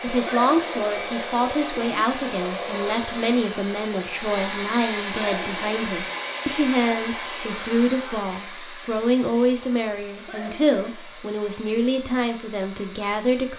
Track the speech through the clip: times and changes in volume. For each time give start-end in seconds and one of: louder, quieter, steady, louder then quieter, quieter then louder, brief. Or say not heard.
0.0-13.5 steady.